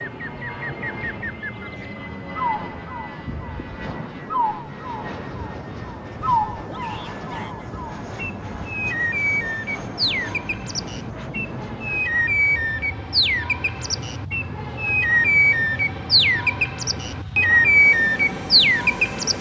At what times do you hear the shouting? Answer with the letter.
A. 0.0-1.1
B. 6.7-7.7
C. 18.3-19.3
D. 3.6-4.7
B.